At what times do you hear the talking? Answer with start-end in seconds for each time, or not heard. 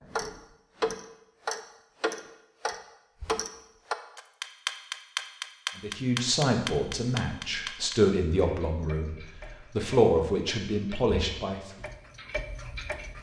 5.8-11.6.